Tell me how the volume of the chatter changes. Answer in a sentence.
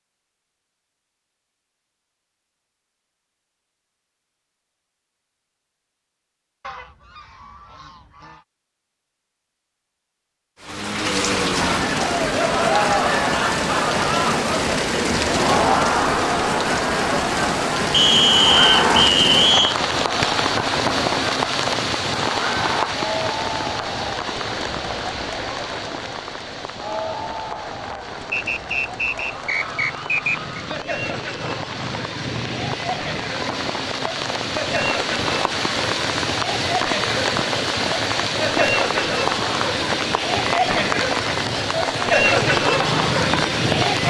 The loudness of the chatter goes down, then up.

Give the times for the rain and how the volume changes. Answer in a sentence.
You can hear the rain from 10.6 to 44.0 s, getting quieter then louder.